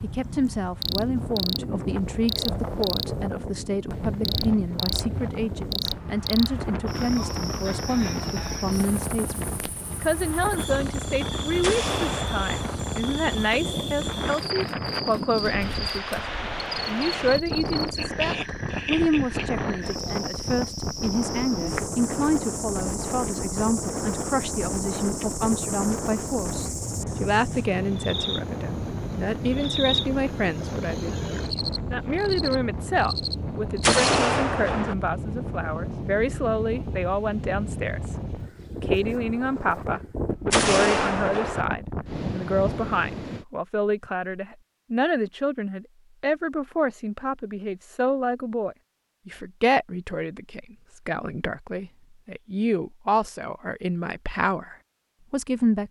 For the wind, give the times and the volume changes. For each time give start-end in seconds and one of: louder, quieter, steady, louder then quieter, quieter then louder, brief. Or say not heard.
0.0-43.5 steady.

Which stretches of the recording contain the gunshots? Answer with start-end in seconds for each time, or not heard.
11.6-12.8, 33.8-35.0, 40.5-41.6.